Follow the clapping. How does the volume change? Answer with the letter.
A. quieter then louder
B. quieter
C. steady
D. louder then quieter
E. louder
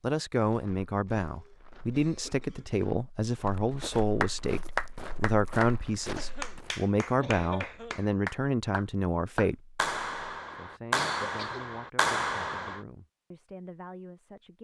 A.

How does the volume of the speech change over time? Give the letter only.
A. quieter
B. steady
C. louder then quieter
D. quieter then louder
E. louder
A.